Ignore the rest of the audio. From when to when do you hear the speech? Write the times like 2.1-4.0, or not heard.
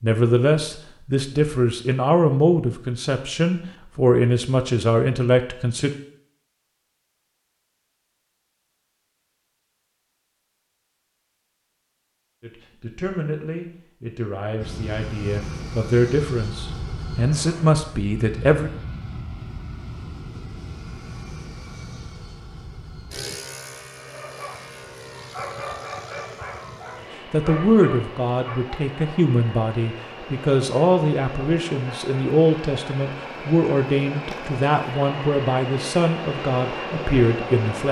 0.0-5.9, 12.4-18.7, 27.3-37.8.